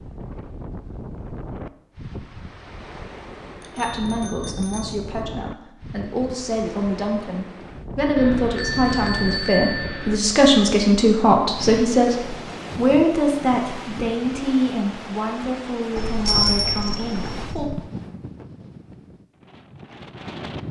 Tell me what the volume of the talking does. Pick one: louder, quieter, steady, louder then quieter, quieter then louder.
louder then quieter.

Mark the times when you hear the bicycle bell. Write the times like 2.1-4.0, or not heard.
3.6-5.0, 8.2-10.2, 15.9-17.7.